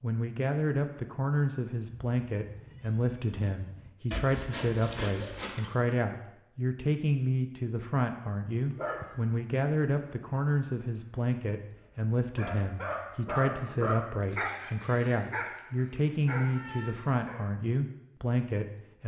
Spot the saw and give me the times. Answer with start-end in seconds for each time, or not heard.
4.1-6.0.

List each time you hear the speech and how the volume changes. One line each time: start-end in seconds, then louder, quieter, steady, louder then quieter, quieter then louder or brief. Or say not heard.
0.0-19.0 steady.